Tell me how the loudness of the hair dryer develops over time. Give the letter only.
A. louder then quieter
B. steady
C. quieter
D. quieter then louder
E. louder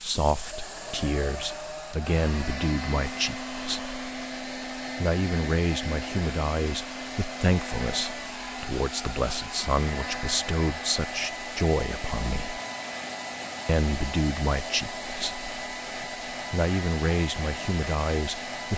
B.